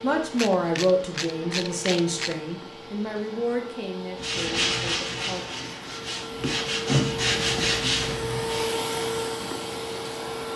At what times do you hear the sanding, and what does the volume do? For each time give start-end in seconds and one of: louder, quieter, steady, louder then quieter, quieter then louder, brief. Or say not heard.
4.2-8.6 quieter then louder.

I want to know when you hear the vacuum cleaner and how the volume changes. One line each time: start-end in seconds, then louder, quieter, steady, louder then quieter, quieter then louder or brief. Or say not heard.
0.0-10.5 louder.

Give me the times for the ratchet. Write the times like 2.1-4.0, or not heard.
0.3-2.5.